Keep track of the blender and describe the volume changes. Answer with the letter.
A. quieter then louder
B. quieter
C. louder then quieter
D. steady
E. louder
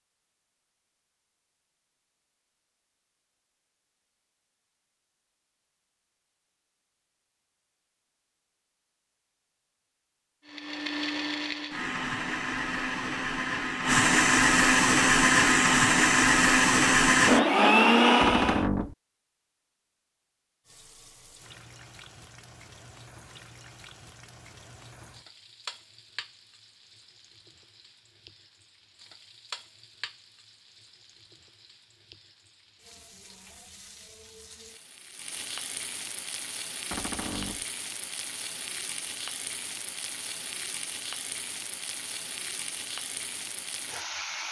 E.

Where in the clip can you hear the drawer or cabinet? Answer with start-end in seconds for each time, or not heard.
18.2-18.9, 36.9-37.6.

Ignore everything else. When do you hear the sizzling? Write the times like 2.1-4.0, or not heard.
20.6-44.4.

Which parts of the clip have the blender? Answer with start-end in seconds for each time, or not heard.
10.4-18.6.